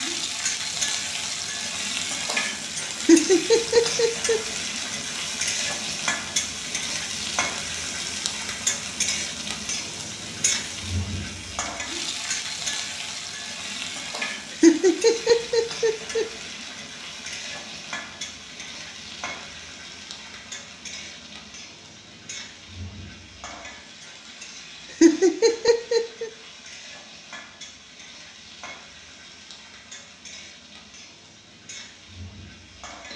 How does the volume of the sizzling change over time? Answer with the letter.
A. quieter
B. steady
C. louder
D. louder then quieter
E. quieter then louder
A.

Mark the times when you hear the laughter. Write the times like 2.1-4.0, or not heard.
3.0-4.4, 14.6-16.2, 25.0-26.3.